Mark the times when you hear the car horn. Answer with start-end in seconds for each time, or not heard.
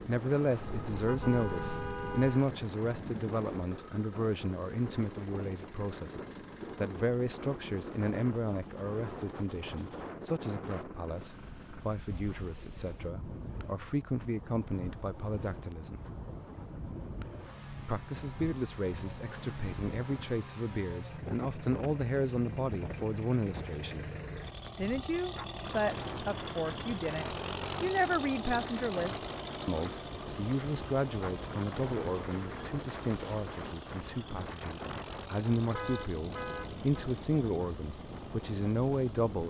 0.6-2.5, 35.6-37.1.